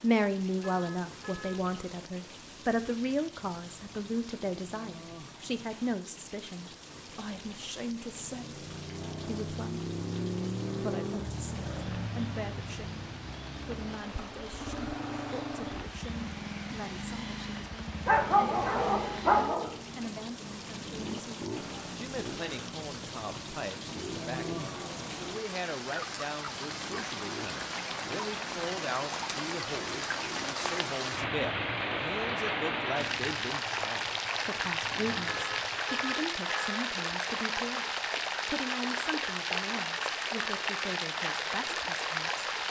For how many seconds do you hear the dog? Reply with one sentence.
The dog can be heard for 2 seconds in total.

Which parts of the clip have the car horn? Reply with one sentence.
You can hear the car horn from 0.7 to 1.6 s and from 35.2 to 36.9 s.